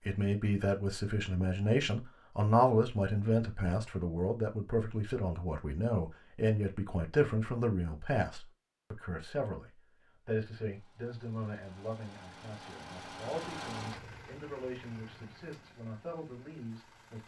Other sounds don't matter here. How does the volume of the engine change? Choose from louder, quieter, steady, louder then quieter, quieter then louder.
louder then quieter.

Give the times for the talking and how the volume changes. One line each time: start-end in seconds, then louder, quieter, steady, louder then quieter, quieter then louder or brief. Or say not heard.
0.1-17.2 quieter.